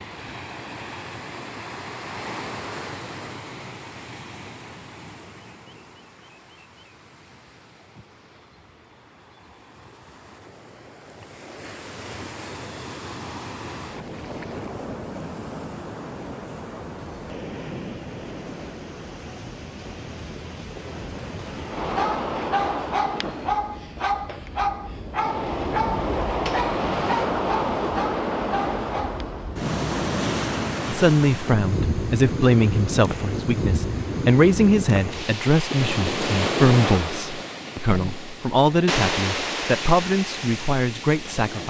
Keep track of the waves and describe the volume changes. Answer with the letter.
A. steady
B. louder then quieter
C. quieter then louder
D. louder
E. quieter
D.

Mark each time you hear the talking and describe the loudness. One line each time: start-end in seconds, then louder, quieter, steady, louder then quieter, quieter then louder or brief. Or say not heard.
30.9-41.6 steady.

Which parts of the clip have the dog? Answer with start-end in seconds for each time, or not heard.
21.8-29.2.